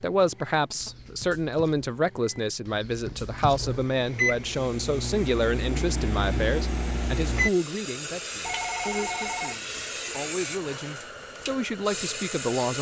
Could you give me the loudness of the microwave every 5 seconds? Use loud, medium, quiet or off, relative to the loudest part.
medium, loud, off.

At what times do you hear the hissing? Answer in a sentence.
You can hear the hissing from 4.5 to 12.7 s.